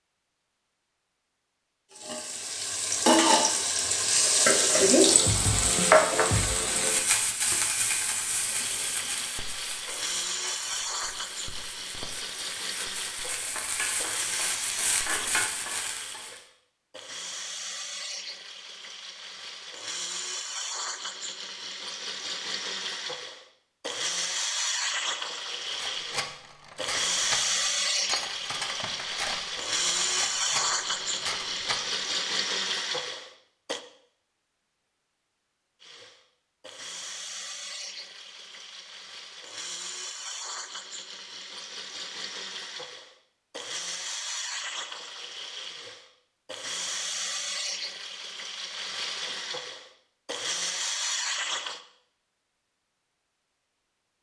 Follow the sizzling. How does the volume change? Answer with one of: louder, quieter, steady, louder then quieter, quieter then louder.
quieter then louder.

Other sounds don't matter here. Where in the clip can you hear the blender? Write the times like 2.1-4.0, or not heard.
8.4-33.8, 35.8-51.8.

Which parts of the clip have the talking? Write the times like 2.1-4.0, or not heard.
not heard.